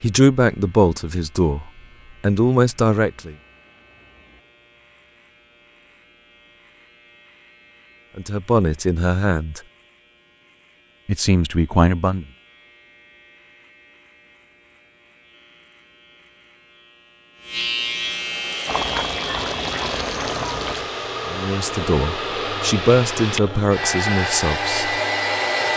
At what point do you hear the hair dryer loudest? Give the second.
25 s.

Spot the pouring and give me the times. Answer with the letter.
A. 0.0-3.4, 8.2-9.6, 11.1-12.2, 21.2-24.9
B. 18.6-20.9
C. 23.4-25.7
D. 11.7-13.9
B.